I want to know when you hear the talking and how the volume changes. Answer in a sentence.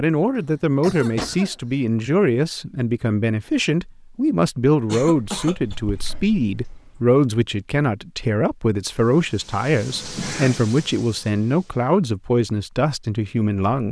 You can hear the talking from 0.0 to 13.8 s, at a steady volume.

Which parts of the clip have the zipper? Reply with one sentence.
The zipper can't be heard in this clip.